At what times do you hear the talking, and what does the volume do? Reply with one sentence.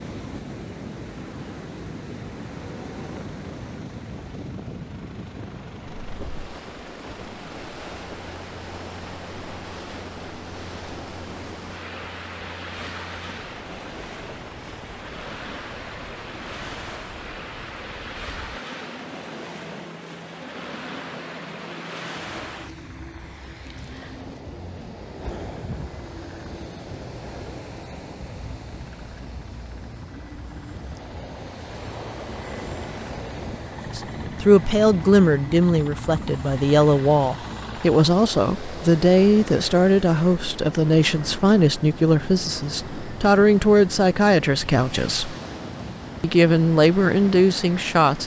The talking can be heard from 34.0 to 45.4 s, at a steady volume; and briefly from 46.2 to 48.2 s.